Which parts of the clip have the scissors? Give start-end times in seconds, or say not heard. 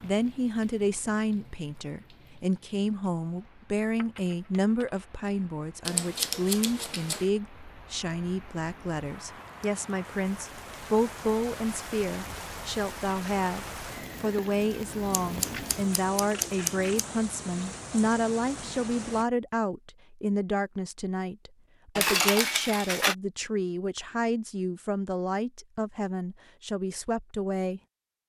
5.8-7.3, 15.1-17.1.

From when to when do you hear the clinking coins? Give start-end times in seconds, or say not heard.
4.0-5.2, 16.1-17.0, 21.9-23.1.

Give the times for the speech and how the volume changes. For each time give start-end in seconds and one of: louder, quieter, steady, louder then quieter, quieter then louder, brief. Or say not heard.
0.0-27.8 steady.